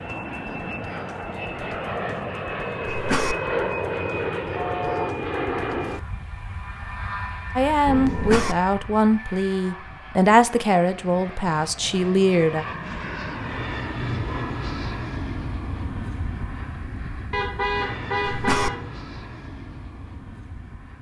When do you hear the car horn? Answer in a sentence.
The car horn can be heard from 4.5 to 5.2 s, from 7.8 to 8.4 s and from 17.3 to 19.1 s.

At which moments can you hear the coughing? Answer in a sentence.
You can hear the coughing from 2.9 to 3.4 s, from 8.1 to 8.6 s and from 18.2 to 18.7 s.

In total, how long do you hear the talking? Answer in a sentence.
You can hear the talking for 5 seconds altogether.